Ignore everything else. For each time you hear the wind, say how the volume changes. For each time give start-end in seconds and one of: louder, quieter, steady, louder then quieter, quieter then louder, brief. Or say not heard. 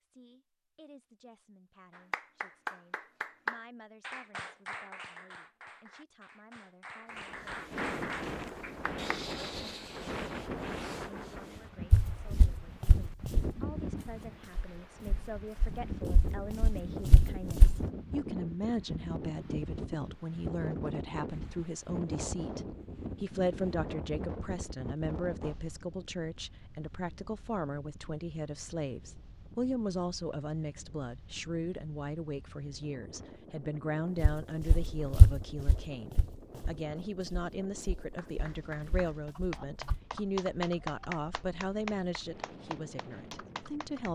7.1-44.1 quieter.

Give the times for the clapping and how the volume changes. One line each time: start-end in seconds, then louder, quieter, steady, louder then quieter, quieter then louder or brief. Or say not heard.
1.9-9.2 quieter then louder
38.1-44.1 louder then quieter.